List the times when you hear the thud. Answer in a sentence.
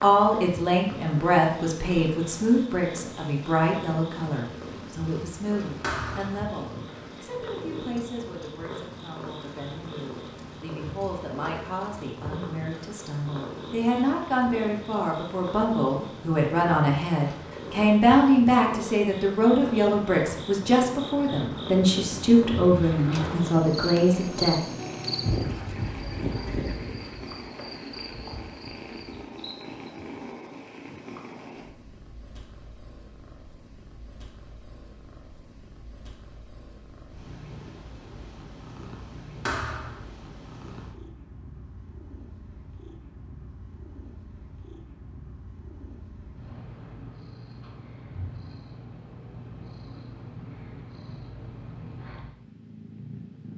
The thud can be heard from 5.8 to 6.4 s and from 39.5 to 40.0 s.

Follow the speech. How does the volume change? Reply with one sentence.
The loudness of the speech goes down, then up.